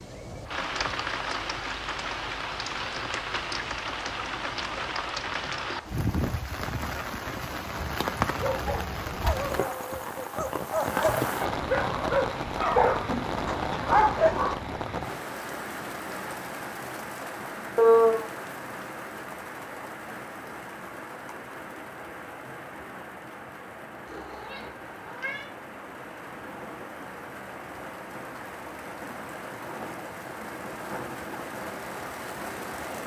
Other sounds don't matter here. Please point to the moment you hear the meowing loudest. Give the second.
18 s.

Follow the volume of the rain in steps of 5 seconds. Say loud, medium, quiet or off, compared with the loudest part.
loud, loud, loud, medium, medium, medium, medium.